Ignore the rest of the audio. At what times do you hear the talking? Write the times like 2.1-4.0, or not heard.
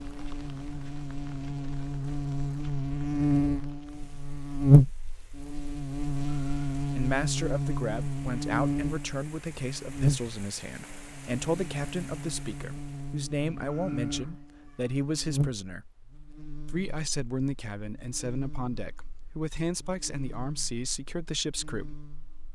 6.8-15.9, 16.6-22.0.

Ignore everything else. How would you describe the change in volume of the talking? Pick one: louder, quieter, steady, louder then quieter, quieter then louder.
steady.